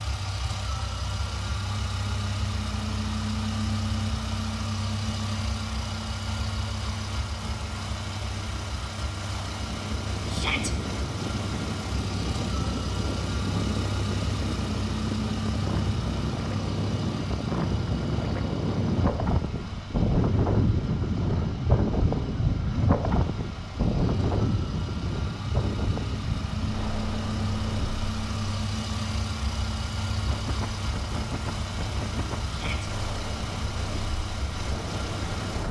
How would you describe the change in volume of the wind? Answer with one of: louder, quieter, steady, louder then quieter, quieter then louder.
louder then quieter.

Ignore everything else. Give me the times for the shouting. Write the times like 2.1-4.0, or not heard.
10.2-10.7, 32.5-32.9.